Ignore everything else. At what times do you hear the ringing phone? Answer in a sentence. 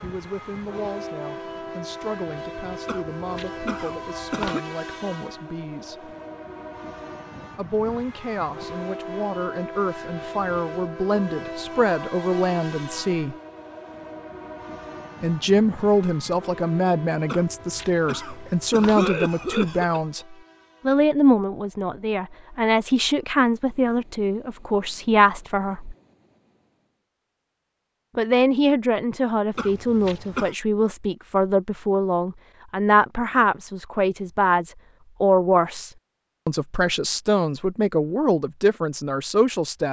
You can't hear the ringing phone here.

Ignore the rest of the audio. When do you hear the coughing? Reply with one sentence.
You can hear the coughing from 2.9 to 4.6 s, from 17.2 to 20.0 s and from 29.6 to 30.6 s.